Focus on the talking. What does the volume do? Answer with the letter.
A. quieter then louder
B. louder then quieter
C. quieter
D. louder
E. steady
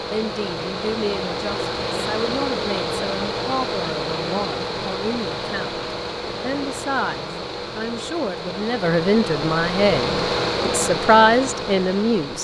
D.